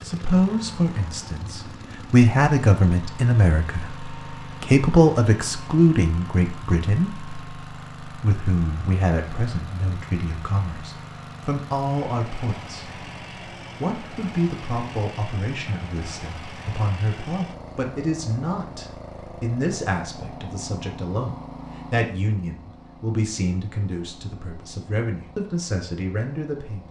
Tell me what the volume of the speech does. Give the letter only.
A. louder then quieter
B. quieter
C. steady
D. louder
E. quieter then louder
B.